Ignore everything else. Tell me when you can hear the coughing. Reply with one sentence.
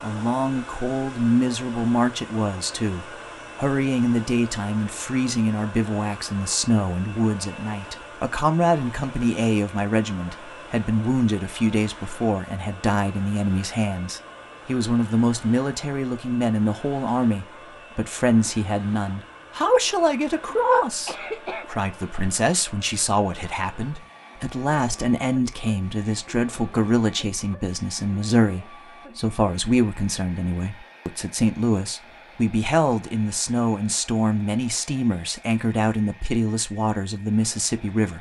You can hear the coughing from 20.4 to 21.6 s.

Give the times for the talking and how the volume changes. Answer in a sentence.
The talking can be heard from 0.0 to 38.1 s, at a steady volume.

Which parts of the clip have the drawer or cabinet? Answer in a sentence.
You can't hear the drawer or cabinet here.